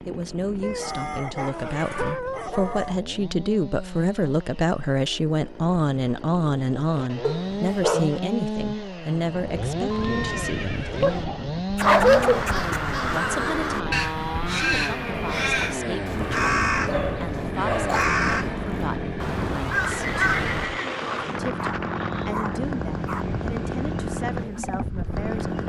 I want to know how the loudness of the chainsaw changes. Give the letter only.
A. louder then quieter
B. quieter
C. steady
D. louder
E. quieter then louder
D.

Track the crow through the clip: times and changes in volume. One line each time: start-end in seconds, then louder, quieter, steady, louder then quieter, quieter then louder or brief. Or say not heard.
11.8-20.7 steady.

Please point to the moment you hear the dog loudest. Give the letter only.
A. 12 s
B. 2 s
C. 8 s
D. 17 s
A.